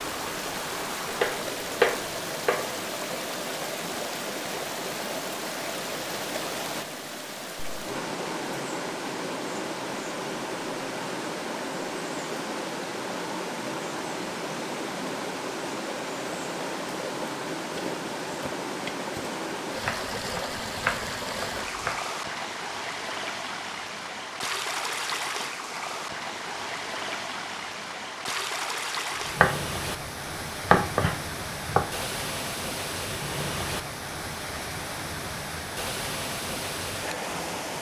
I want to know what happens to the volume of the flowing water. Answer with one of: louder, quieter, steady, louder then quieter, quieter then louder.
steady.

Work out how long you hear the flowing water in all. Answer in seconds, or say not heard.
38 s.